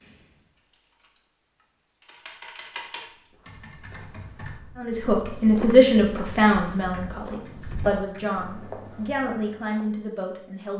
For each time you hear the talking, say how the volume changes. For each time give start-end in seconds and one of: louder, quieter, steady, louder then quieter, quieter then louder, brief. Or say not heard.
4.8-10.7 quieter.